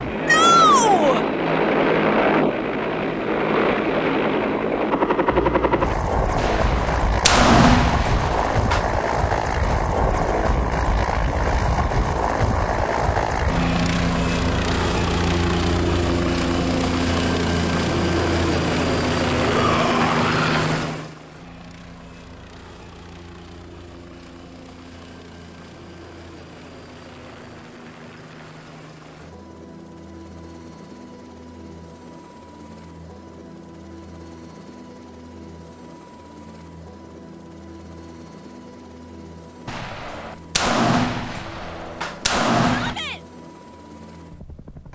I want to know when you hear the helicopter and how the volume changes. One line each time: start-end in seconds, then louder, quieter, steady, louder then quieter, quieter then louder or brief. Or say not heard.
0.0-44.9 quieter.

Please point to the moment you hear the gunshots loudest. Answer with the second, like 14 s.
8 s.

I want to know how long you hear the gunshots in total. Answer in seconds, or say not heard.
6 s.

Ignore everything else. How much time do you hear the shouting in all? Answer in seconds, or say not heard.
3 s.